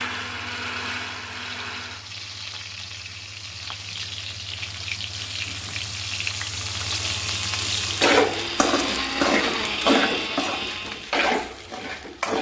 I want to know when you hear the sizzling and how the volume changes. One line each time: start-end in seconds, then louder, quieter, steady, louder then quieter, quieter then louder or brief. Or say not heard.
0.0-12.3 louder.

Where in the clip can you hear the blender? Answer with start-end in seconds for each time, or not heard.
0.0-2.1, 6.7-11.2.